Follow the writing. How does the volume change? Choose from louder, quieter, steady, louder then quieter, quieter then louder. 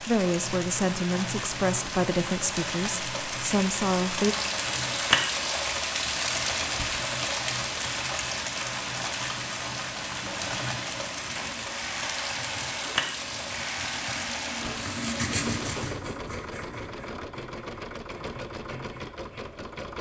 louder then quieter.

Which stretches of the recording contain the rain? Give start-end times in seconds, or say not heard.
0.0-15.9.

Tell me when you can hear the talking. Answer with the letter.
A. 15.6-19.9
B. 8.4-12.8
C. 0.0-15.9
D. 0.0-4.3
D.